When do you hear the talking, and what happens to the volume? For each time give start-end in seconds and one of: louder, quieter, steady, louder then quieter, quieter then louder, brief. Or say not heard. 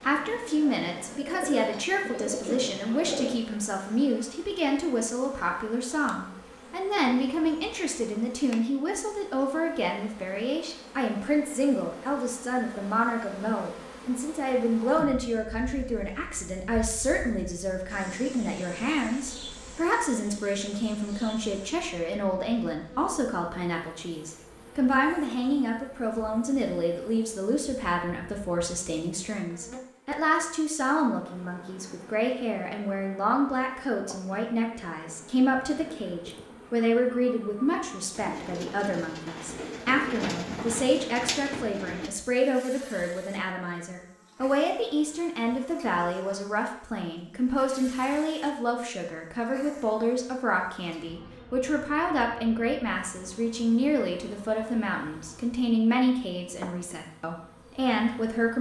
0.0-58.5 steady.